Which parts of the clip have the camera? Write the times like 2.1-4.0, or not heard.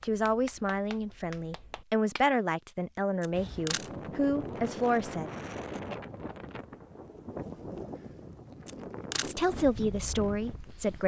3.2-3.9, 8.7-9.3.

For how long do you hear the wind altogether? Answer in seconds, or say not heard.
8 s.